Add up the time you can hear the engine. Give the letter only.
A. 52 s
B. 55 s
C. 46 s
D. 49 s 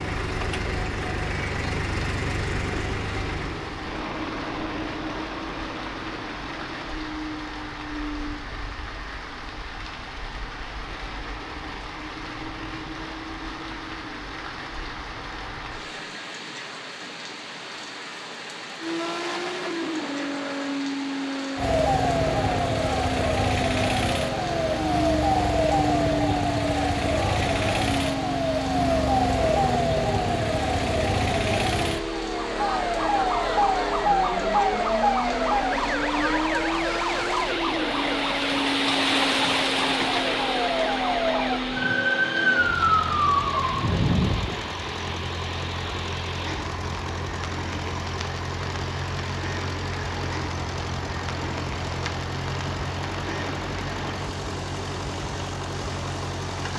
C.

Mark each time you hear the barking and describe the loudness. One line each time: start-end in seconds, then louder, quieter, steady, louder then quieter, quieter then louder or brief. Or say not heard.
not heard.